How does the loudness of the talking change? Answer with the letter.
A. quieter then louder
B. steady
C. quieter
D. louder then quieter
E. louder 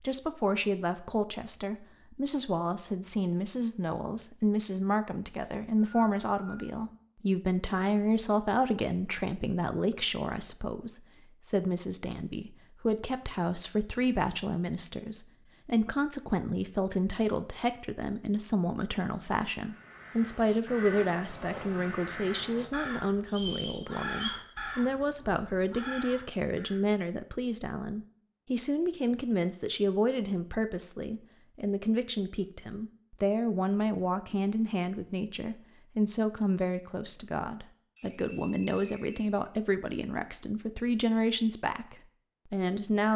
B.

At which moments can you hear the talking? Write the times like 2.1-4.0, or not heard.
0.0-43.1.